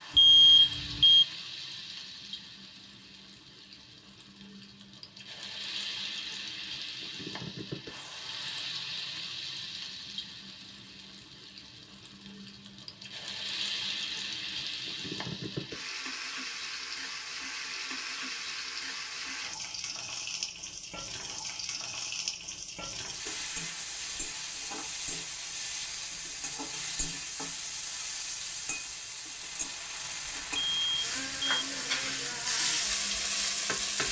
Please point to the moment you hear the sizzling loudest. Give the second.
33 s.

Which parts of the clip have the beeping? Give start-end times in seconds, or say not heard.
0.1-1.2, 30.5-31.6.